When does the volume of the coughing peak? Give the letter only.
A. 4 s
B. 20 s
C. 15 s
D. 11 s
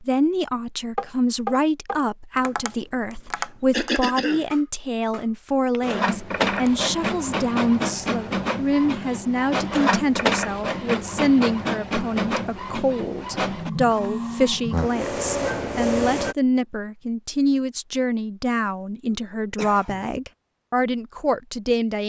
A.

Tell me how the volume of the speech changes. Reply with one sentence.
The volume of the speech stays about the same.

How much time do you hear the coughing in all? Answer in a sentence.
The coughing can be heard for 2 seconds in total.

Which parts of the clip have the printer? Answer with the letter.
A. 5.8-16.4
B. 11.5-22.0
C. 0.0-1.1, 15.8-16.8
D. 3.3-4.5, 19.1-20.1
A.